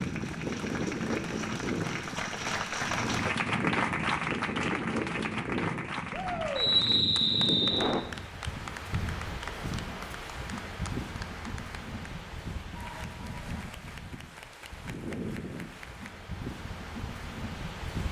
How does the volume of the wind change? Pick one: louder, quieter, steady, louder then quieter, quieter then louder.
quieter.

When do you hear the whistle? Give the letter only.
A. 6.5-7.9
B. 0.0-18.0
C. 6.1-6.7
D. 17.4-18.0
A.